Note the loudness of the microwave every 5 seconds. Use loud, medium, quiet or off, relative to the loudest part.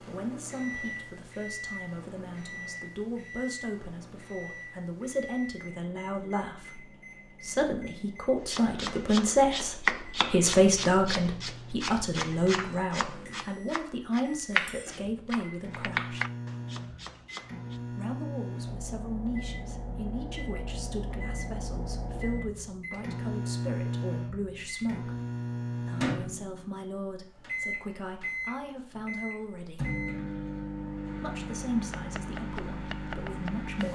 medium, quiet, quiet, medium, loud, loud, loud.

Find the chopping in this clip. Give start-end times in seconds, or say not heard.
8.4-17.8, 31.9-33.8.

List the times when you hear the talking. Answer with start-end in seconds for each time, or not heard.
0.0-16.2, 17.9-25.1, 25.8-29.9, 31.2-33.8.